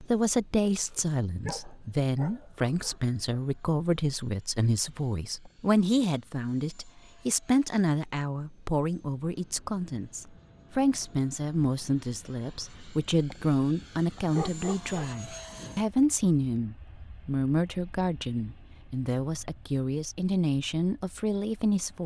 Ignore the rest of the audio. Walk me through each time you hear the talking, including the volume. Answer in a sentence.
You can hear the talking from 0.0 to 22.0 s, at a steady volume.